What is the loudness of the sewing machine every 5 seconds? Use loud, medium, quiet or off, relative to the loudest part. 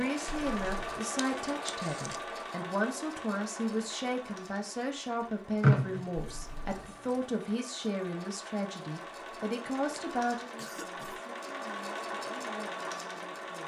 loud, medium, loud.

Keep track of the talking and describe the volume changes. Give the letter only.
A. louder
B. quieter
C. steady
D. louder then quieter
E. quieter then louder
B.